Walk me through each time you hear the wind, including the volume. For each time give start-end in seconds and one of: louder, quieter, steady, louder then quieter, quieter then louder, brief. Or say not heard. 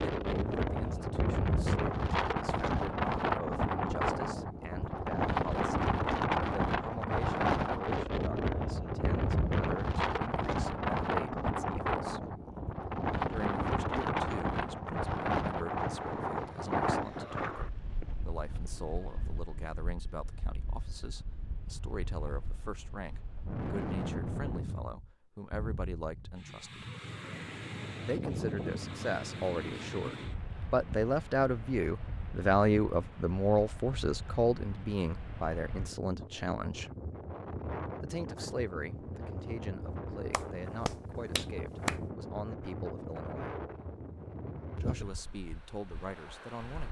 0.0-46.8 quieter.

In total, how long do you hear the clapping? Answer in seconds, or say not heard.
2 s.